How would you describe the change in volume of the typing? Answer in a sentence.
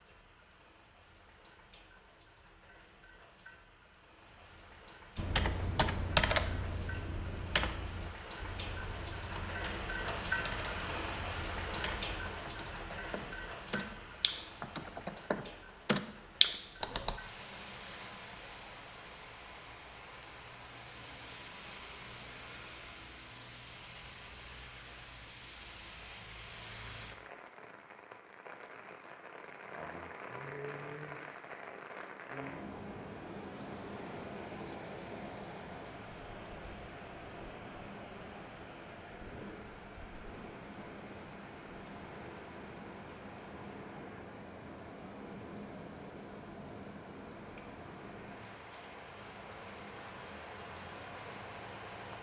The loudness of the typing goes down, then up.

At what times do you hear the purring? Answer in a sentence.
You can't hear the purring here.